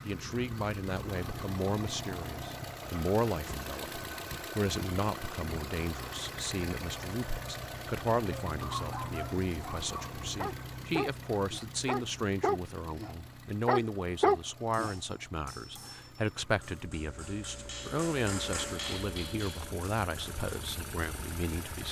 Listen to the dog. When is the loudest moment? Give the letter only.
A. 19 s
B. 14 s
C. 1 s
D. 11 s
B.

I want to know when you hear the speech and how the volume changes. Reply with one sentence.
The speech can be heard from 0.1 to 21.8 s, at a steady volume.